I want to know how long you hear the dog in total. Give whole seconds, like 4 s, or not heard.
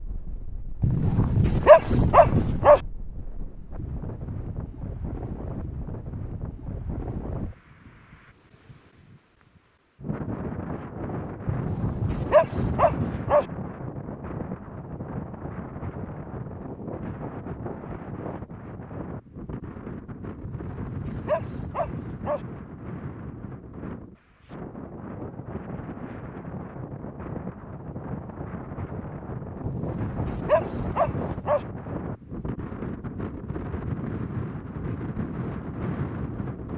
8 s.